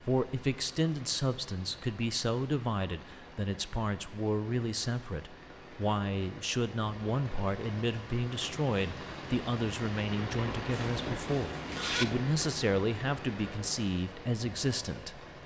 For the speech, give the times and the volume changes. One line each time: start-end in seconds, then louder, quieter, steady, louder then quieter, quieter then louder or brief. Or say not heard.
0.0-15.2 steady.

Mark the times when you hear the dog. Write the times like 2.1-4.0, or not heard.
not heard.